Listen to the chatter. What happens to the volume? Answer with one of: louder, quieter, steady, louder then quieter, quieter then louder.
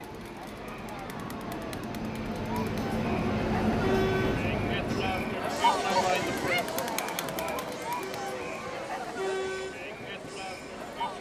louder then quieter.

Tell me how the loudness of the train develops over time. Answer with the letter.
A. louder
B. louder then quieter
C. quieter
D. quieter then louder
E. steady
B.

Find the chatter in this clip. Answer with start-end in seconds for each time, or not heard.
0.0-11.1.